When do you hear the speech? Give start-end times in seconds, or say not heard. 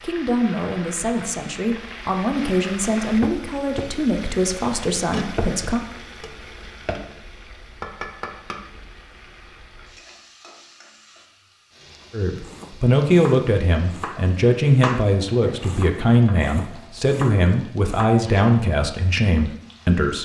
0.0-5.8, 12.1-20.2.